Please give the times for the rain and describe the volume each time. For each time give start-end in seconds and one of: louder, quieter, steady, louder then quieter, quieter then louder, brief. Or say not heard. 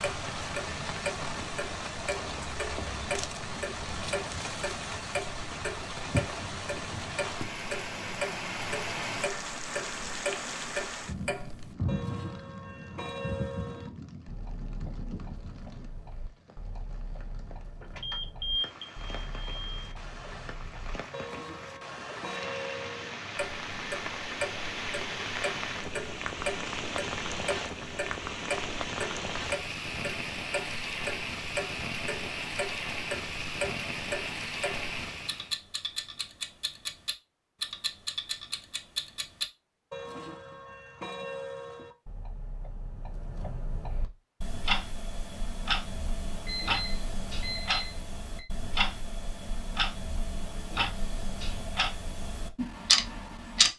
0.0-35.5 quieter then louder.